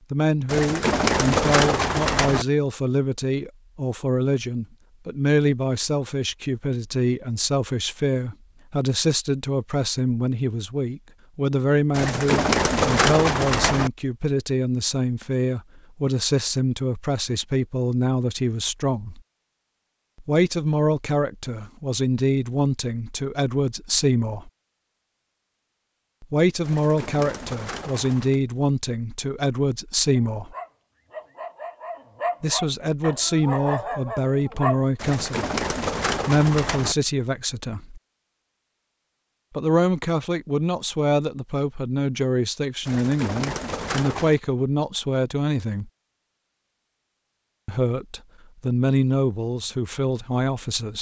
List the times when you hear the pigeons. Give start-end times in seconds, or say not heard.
0.5-2.5, 11.9-13.9, 26.6-28.4, 35.0-37.0, 42.9-44.4.